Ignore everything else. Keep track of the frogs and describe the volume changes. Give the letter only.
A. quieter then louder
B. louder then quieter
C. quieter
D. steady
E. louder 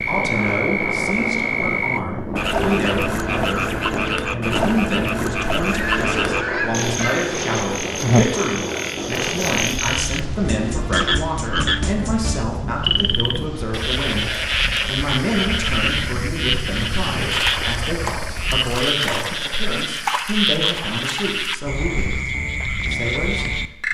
D.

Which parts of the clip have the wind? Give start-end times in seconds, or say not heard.
0.0-18.7.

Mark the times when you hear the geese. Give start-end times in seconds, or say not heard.
5.7-7.3.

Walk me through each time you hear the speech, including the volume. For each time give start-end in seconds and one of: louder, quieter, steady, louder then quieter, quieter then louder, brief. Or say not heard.
0.0-22.2 steady
22.9-23.8 brief.